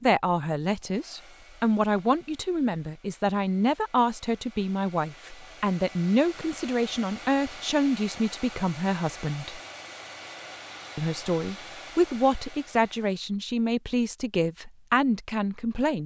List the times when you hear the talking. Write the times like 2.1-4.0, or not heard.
0.0-9.6, 10.9-16.0.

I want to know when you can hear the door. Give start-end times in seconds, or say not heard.
not heard.